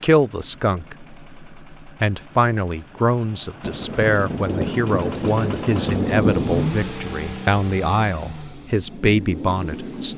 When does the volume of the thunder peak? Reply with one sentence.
The loudest moment of the thunder is at 6 seconds.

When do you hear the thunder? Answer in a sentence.
You can hear the thunder from 3.6 to 6.8 s.